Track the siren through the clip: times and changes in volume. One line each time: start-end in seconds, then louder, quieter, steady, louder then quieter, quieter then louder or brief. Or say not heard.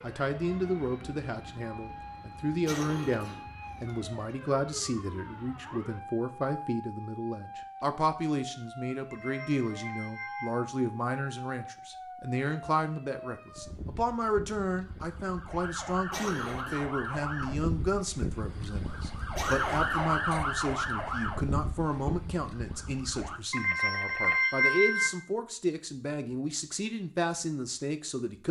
0.0-23.4 louder.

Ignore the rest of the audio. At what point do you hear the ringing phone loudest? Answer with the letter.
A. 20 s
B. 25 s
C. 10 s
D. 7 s
B.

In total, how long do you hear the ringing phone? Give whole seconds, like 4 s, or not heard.
3 s.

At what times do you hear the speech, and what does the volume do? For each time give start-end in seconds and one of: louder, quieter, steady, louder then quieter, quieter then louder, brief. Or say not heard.
0.0-28.4 steady.